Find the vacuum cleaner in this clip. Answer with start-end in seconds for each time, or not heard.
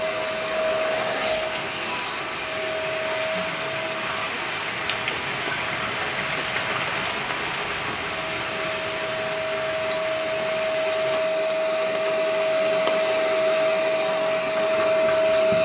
0.0-15.6.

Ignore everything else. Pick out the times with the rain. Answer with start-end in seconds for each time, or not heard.
0.0-13.2.